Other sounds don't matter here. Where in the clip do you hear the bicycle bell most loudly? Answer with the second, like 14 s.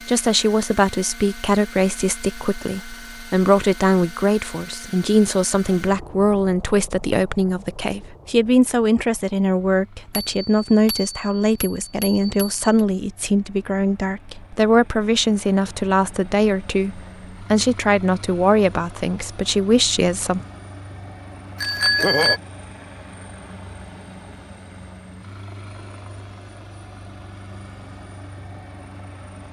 22 s.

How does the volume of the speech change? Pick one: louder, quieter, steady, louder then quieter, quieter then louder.
steady.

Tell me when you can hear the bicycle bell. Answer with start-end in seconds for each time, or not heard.
10.1-12.8, 21.6-22.4.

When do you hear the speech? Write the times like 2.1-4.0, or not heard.
0.1-20.4.